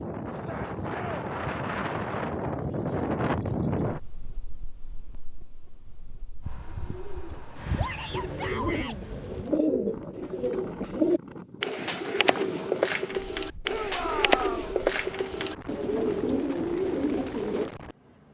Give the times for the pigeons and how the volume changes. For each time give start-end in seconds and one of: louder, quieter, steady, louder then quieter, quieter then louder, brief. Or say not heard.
6.4-17.7 louder.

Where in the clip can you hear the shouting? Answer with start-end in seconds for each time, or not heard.
0.3-1.2, 7.8-9.0, 13.7-14.7.